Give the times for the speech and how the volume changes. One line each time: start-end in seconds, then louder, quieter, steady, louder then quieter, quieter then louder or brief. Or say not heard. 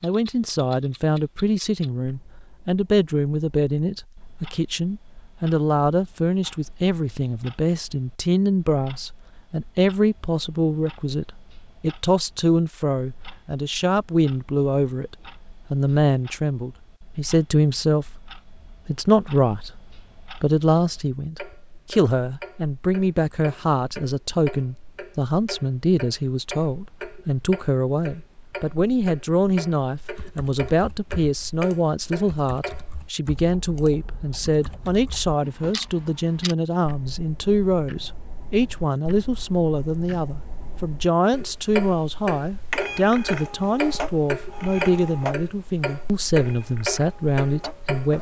0.0-18.2 steady
18.9-48.1 steady.